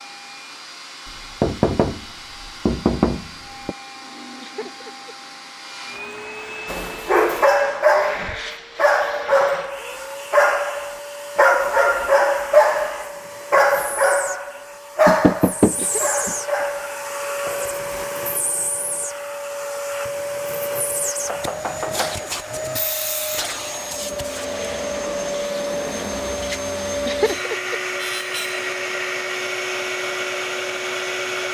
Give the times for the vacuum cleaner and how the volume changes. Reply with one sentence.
You can hear the vacuum cleaner from 0.0 to 31.4 s, getting louder.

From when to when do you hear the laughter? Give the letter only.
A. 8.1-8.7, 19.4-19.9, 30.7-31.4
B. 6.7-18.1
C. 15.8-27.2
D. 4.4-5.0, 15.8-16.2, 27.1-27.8
D.